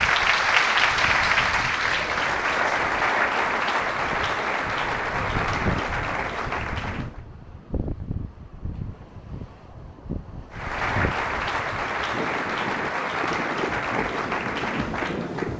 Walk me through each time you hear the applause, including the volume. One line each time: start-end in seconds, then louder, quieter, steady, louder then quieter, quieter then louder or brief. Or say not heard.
0.0-7.2 quieter
10.5-15.5 steady.